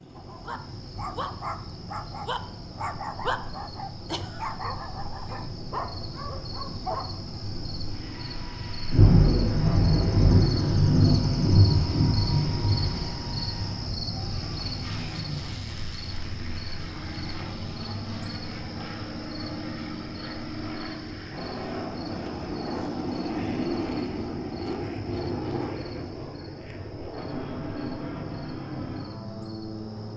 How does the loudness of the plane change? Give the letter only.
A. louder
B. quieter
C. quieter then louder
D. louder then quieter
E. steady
A.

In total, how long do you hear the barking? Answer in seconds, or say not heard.
8 s.